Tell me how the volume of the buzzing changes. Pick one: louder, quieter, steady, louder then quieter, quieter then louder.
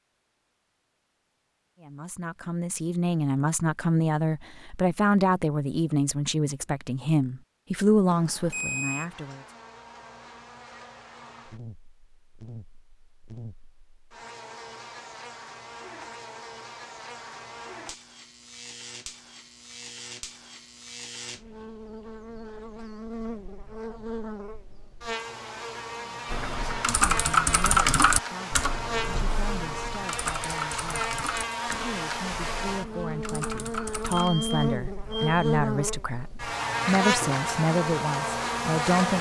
louder.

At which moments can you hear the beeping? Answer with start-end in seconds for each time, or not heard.
8.1-9.1, 34.2-35.5.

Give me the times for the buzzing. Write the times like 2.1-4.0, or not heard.
8.9-39.1.